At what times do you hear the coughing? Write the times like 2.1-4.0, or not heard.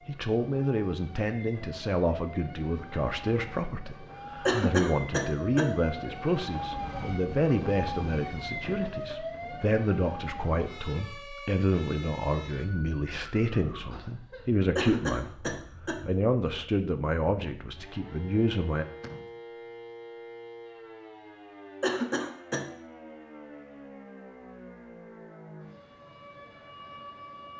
4.5-5.7, 14.8-16.0, 21.8-22.6.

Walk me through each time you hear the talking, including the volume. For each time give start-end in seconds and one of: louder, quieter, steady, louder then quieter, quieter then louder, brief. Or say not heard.
0.1-18.9 steady.